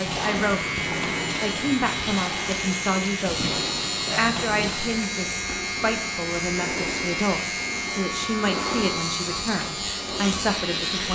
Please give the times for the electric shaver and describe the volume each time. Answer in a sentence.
You can hear the electric shaver from 0.0 to 11.1 s, at a steady volume.